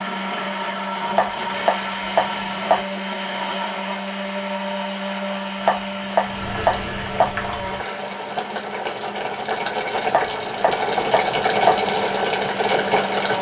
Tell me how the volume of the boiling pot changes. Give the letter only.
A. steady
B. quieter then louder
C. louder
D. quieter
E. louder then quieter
C.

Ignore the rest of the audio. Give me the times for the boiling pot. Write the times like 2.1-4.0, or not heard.
6.2-13.3.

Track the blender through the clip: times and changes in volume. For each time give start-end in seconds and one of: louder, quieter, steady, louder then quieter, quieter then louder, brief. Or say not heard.
0.0-13.3 quieter.